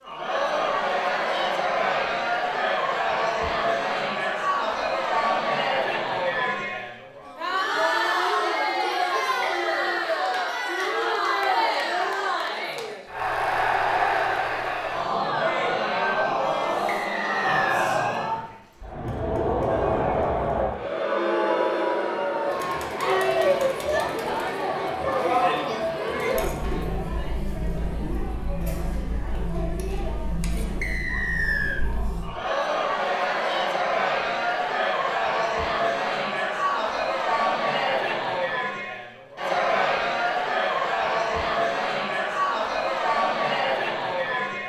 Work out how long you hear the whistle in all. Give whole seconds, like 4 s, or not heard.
3 s.